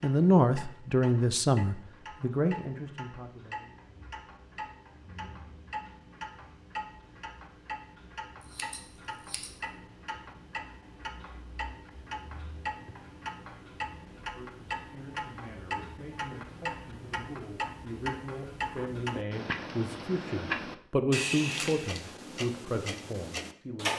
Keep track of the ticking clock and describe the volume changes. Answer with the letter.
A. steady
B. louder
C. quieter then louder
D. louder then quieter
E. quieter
B.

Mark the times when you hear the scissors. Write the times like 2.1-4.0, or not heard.
8.4-9.6.